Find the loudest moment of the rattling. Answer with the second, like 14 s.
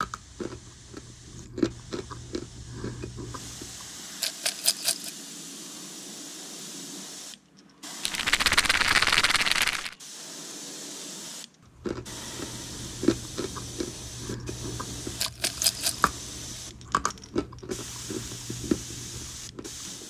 9 s.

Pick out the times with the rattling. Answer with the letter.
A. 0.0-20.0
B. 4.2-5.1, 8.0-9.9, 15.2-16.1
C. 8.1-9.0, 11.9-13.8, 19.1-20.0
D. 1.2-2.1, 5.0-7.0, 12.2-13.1
B.